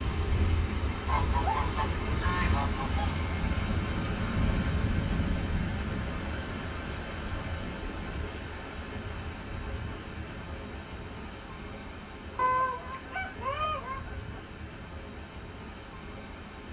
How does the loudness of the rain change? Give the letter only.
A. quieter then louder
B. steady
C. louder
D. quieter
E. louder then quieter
D.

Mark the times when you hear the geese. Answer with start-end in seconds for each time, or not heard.
1.1-3.1, 12.3-14.4.